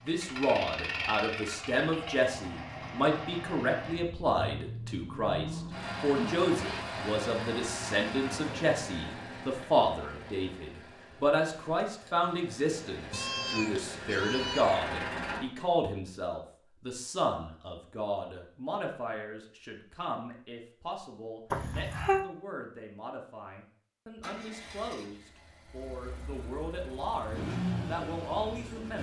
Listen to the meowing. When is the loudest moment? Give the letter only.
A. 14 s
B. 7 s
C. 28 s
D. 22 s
D.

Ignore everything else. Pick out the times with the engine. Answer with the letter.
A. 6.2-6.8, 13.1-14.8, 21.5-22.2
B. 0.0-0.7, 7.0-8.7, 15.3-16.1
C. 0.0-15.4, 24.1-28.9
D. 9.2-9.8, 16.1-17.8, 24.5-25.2
C.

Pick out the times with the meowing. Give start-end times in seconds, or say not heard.
6.2-6.8, 13.1-14.8, 21.5-22.2.